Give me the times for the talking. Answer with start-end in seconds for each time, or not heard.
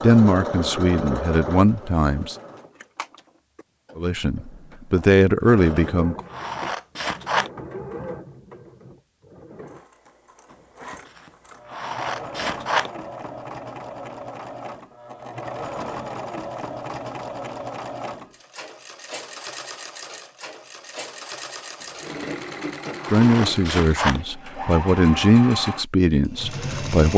0.0-2.4, 4.0-6.2, 23.1-27.1.